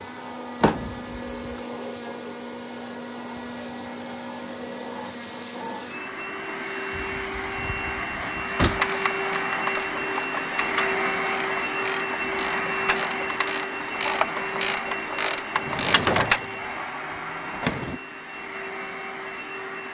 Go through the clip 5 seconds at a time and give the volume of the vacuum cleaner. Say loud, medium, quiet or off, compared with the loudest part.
medium, loud, loud, medium.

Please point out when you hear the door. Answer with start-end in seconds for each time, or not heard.
0.6-1.4, 7.0-8.8, 15.6-18.0.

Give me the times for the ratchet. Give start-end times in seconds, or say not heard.
8.7-16.4.